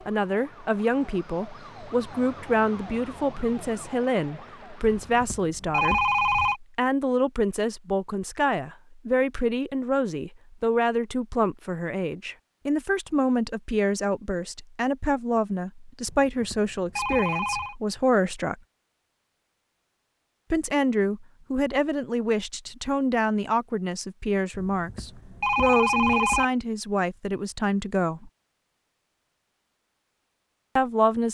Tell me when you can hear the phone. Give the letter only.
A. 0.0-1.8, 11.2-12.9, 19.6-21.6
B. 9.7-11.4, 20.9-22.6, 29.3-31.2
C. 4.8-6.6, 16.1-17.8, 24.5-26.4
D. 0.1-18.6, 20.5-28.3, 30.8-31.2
C.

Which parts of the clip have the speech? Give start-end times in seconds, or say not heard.
0.1-18.6, 20.5-28.3, 30.8-31.2.